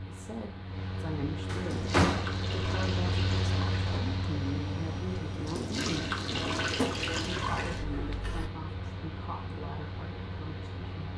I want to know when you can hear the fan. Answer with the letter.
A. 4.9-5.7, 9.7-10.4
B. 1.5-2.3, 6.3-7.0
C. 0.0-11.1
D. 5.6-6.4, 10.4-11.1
C.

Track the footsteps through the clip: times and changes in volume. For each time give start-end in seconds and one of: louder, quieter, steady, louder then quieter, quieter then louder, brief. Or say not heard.
not heard.